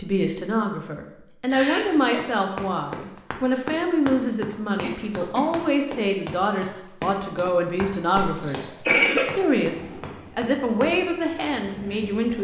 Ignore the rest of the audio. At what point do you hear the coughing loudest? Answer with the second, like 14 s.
9 s.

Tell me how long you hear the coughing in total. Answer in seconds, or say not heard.
2 s.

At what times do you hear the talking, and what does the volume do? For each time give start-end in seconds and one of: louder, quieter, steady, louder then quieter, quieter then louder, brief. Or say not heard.
0.0-12.4 steady.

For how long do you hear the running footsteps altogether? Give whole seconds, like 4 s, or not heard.
9 s.